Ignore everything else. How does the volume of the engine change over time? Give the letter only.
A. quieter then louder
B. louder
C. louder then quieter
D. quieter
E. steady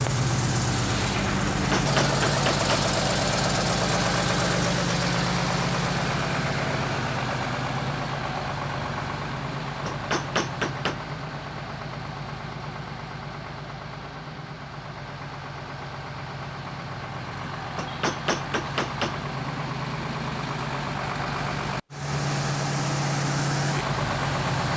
A.